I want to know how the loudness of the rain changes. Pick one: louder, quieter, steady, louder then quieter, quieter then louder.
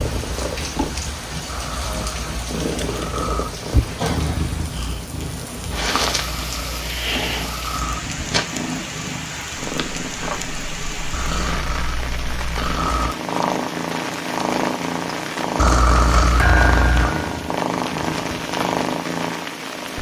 steady.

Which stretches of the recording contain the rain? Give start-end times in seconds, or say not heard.
0.0-19.9.